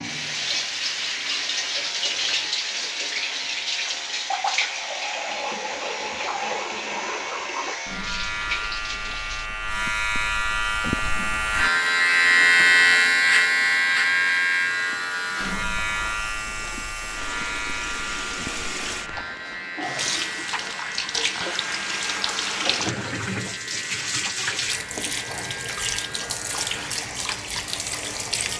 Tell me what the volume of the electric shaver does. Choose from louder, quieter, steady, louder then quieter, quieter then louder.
louder then quieter.